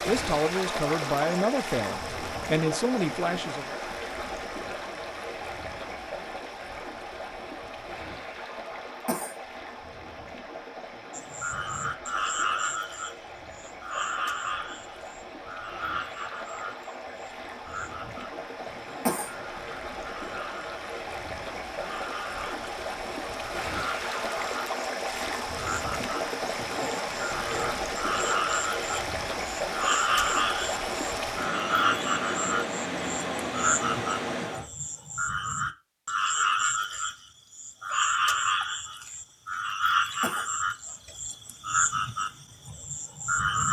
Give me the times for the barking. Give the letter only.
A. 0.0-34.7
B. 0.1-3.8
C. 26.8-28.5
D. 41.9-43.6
C.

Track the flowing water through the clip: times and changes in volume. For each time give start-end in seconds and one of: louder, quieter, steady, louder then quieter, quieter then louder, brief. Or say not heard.
0.0-34.7 quieter then louder.